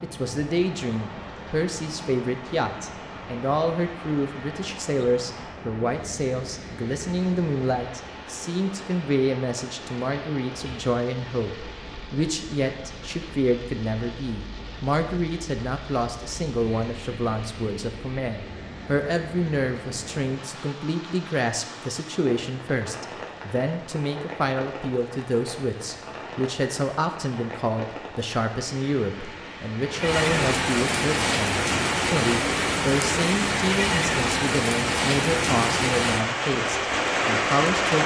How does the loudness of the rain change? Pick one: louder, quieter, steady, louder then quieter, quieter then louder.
louder.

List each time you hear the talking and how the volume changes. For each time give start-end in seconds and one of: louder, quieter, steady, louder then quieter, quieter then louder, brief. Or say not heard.
0.0-38.0 steady.